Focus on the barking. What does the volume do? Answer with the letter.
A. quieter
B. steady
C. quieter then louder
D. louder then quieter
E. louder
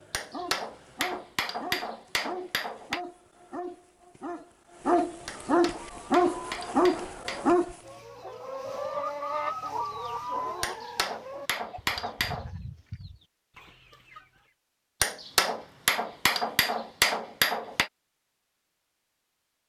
E.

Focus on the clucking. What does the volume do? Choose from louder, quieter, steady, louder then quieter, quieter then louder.
louder then quieter.